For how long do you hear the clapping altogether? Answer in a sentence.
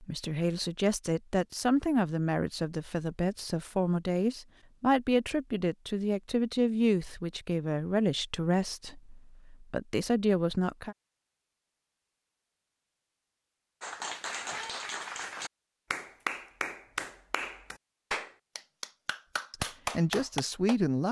You can hear the clapping for 7 seconds altogether.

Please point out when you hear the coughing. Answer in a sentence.
You can't hear the coughing here.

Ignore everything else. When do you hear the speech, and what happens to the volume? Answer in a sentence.
You can hear the speech from 0.0 to 10.9 s, at a steady volume; and briefly from 19.5 to 21.0 s.